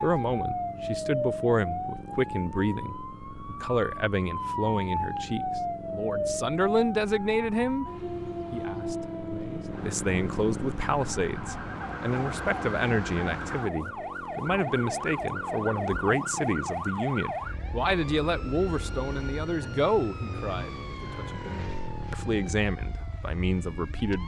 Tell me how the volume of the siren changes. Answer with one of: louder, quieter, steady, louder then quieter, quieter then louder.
quieter.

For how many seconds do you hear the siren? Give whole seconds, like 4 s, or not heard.
24 s.